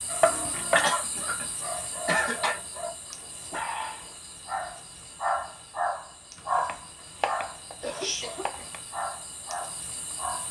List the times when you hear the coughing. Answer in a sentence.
You can hear the coughing from 0.8 to 1.4 s, from 2.0 to 2.5 s and from 7.8 to 8.7 s.